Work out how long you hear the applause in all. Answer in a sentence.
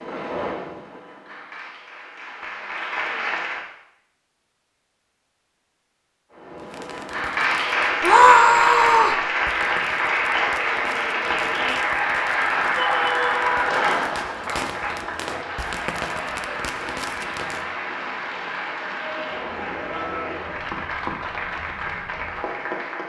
You can hear the applause for 20 seconds altogether.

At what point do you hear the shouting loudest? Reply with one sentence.
The volume of the shouting peaks at 8 seconds.